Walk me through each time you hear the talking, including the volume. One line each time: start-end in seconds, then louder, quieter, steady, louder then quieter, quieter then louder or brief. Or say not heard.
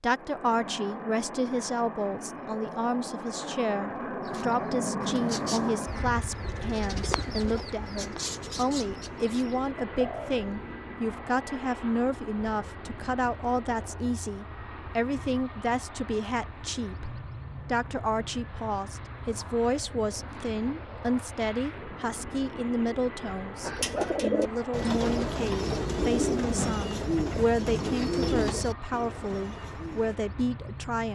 0.0-31.1 steady.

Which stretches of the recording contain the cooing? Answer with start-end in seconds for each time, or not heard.
4.2-10.5, 23.6-30.1.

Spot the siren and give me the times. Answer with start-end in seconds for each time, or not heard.
not heard.